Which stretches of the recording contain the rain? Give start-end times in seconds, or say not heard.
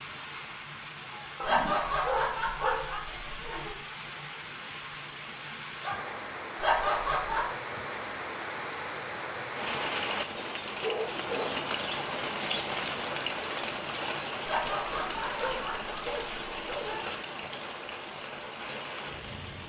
0.0-19.6.